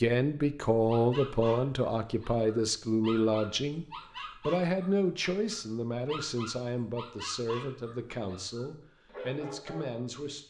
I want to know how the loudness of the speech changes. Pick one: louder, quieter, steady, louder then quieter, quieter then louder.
quieter.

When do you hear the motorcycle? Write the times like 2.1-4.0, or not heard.
not heard.